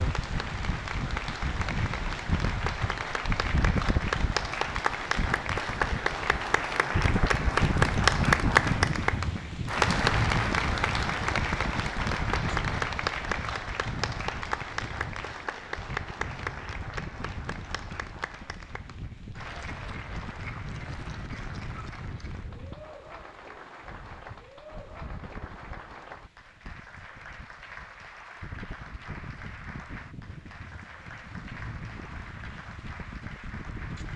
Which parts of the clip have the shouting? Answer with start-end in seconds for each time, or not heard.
not heard.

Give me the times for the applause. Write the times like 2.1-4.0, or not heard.
0.0-34.1.